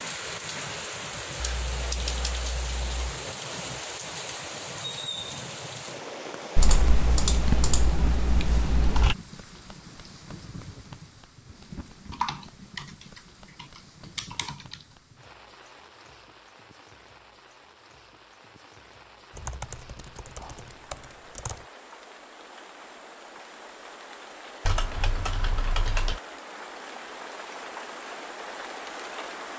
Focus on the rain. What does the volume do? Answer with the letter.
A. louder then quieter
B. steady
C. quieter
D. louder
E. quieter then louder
E.